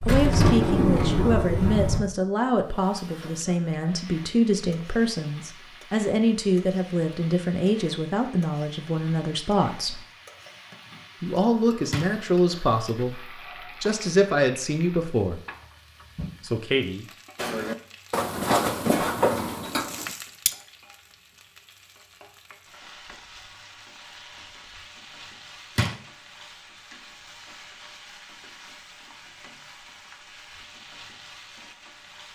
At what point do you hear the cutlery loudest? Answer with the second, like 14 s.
19 s.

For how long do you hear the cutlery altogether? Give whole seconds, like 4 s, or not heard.
3 s.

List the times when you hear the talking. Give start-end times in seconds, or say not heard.
0.1-10.0, 11.2-15.4, 16.4-17.1.